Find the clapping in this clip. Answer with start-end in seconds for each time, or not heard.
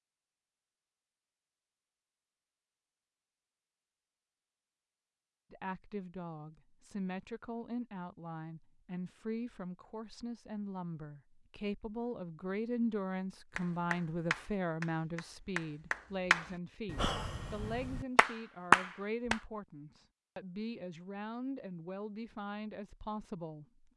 13.6-19.4.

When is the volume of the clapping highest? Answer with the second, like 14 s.
19 s.